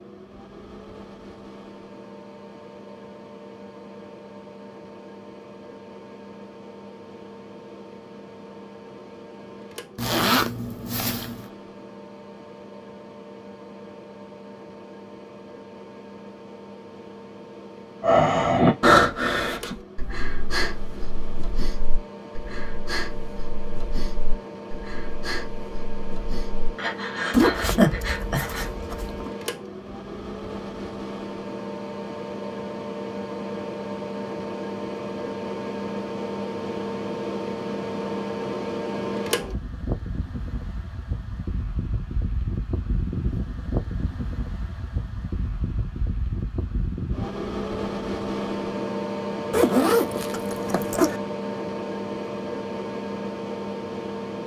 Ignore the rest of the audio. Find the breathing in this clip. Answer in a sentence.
You can hear the breathing from 18.0 to 28.7 s.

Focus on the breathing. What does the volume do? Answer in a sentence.
The volume of the breathing goes down, then up.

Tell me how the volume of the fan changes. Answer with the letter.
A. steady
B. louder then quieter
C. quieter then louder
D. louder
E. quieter
D.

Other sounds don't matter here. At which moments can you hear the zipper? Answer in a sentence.
The zipper can be heard from 9.9 to 11.4 s, from 27.3 to 29.3 s and from 49.5 to 51.2 s.